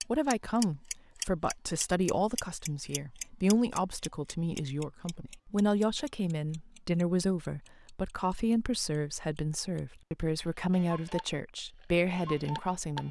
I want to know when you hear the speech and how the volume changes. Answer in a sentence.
The speech can be heard from 0.1 to 13.0 s, at a steady volume.